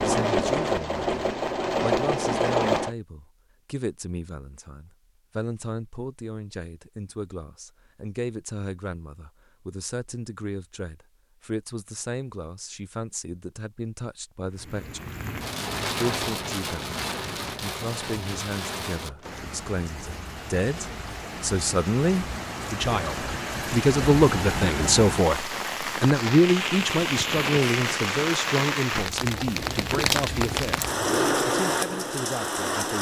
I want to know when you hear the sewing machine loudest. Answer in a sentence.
The loudest moment of the sewing machine is at 2 seconds.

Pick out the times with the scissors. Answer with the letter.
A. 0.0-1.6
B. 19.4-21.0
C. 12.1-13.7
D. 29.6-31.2
D.